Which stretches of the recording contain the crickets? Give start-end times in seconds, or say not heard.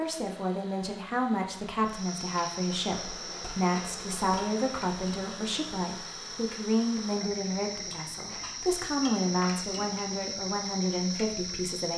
1.9-11.9.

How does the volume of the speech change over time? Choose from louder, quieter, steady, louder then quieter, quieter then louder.
steady.